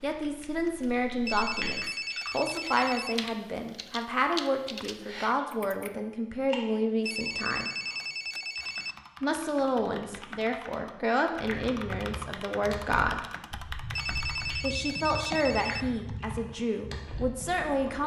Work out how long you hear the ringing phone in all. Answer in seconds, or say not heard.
6 s.